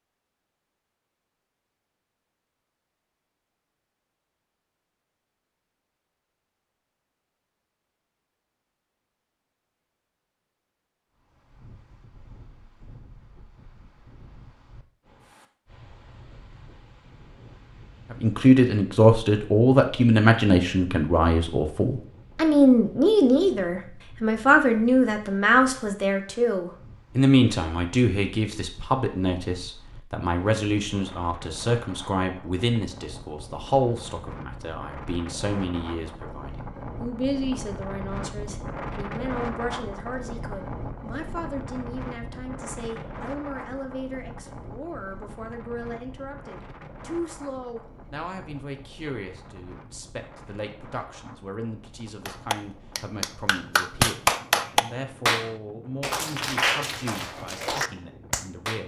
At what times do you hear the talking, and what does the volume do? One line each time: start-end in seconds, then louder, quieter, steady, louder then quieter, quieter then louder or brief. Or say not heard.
18.1-58.8 quieter.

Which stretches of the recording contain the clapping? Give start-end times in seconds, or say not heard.
52.2-58.8.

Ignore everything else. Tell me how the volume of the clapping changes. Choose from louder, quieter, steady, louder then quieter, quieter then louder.
louder then quieter.